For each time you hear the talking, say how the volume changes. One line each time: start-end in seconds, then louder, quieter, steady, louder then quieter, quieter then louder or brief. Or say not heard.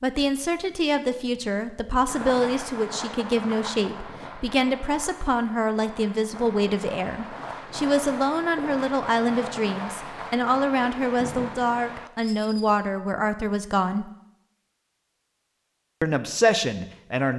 0.0-14.1 steady
16.0-17.3 brief.